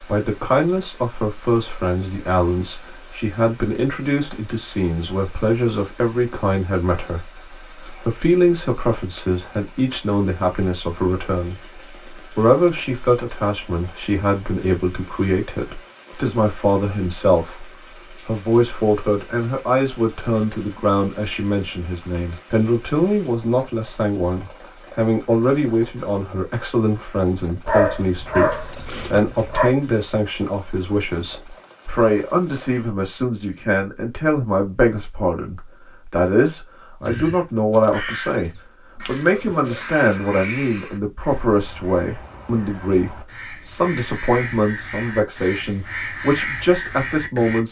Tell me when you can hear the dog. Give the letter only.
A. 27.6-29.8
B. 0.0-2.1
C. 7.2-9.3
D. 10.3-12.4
A.